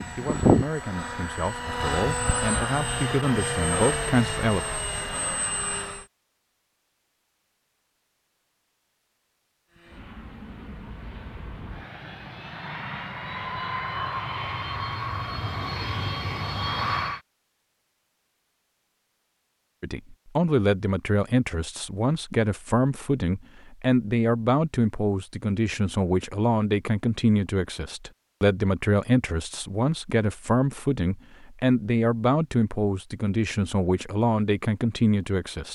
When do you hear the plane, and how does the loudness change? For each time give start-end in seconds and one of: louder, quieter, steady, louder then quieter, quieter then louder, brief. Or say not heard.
0.0-6.0 quieter
9.7-17.2 louder.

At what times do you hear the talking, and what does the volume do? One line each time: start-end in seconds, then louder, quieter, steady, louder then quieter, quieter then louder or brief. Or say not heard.
0.1-4.7 louder
19.8-35.6 steady.